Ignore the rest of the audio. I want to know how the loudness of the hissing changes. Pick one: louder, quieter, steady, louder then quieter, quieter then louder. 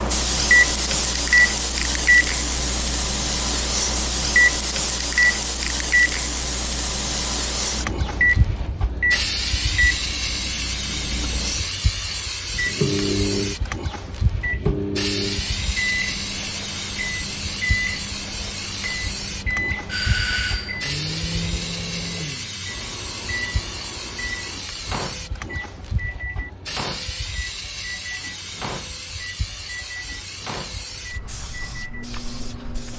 quieter.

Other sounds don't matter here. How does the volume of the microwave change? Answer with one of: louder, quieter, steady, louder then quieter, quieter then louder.
quieter.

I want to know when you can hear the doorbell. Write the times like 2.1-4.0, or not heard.
19.9-20.9.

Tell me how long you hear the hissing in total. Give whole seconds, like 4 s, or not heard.
33 s.